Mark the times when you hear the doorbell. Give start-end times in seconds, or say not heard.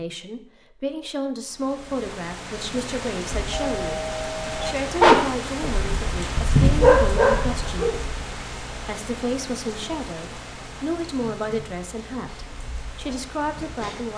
3.5-4.8.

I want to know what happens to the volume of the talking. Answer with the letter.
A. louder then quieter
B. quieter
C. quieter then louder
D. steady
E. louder
D.